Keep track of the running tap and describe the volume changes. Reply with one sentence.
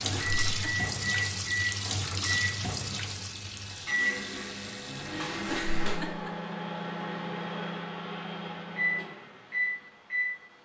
The loudness of the running tap goes down.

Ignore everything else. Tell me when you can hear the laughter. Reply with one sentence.
The laughter can be heard from 0.1 to 0.9 s and from 5.5 to 6.3 s.